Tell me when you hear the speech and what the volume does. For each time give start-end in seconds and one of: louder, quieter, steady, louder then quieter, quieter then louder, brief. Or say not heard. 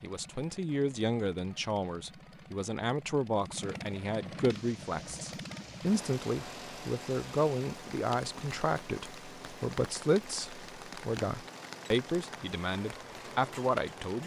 0.0-14.2 steady.